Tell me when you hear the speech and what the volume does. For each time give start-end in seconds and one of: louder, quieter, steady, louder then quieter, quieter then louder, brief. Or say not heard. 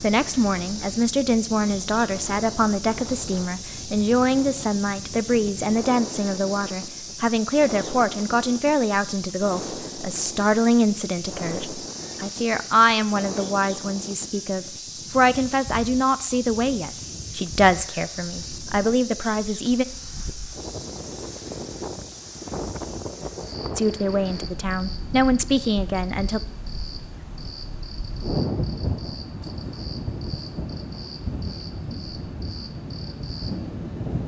0.0-19.9 steady
23.8-26.4 brief.